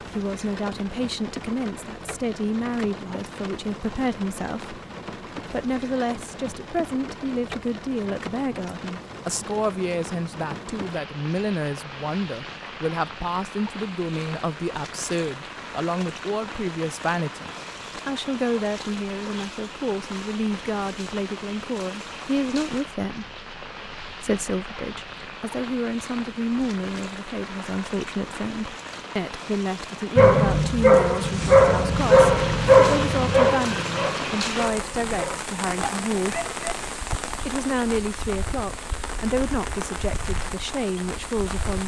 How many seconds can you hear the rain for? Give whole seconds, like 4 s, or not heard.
42 s.